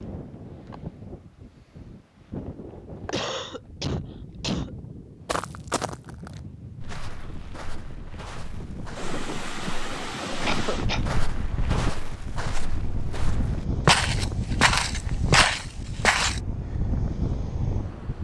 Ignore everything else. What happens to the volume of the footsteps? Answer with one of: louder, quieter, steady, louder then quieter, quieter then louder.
quieter then louder.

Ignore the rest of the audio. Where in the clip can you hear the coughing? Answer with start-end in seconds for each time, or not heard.
2.6-4.7, 10.4-11.0.